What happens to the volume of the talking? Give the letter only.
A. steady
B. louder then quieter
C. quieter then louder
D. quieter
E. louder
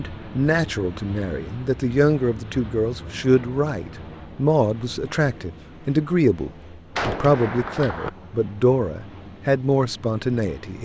A.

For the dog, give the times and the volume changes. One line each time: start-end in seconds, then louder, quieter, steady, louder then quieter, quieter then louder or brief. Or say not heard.
not heard.